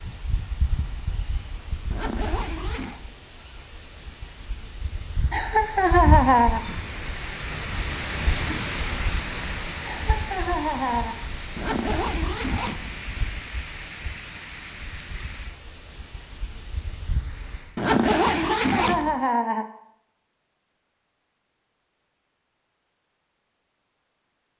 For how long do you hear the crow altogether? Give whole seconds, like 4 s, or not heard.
not heard.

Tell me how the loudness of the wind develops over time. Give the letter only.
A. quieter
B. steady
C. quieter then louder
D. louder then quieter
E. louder
D.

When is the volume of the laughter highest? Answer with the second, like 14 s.
6 s.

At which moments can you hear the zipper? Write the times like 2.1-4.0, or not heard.
1.9-3.0, 11.6-13.3, 17.8-19.1.